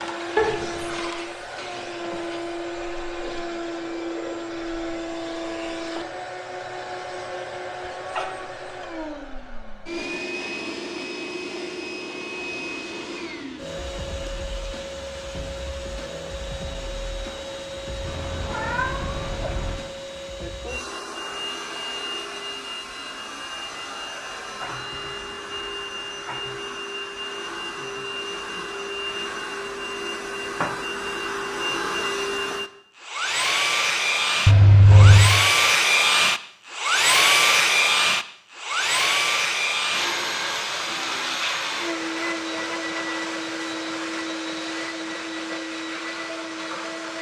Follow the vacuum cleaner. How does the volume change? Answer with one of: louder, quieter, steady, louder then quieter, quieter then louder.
louder.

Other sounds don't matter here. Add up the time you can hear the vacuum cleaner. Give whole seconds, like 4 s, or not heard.
47 s.